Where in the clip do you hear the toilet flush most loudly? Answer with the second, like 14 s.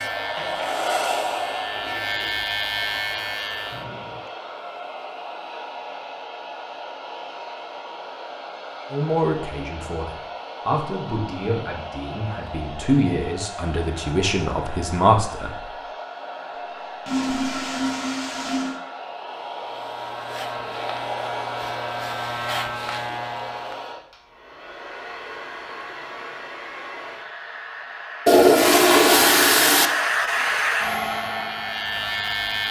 29 s.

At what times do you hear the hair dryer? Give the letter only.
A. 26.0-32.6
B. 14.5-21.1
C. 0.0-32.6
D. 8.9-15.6
C.